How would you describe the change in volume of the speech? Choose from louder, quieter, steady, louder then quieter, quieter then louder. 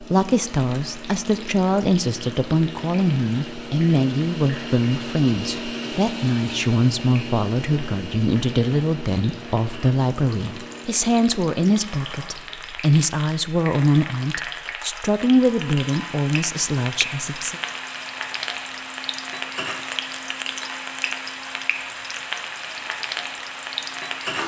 steady.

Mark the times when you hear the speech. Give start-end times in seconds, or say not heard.
0.0-17.6.